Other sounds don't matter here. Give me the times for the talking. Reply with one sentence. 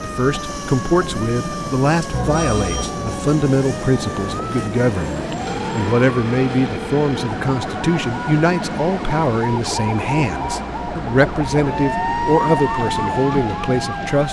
You can hear the talking from 0.0 to 14.2 s.